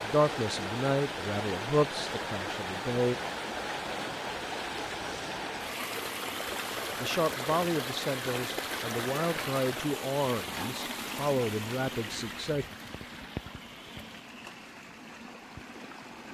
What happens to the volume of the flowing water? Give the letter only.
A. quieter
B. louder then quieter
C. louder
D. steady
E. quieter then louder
A.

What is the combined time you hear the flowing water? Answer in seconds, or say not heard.
16 s.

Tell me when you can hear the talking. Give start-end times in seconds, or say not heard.
0.0-3.1, 7.0-12.7.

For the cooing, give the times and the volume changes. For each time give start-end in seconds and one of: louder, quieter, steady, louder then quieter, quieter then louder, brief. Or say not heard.
not heard.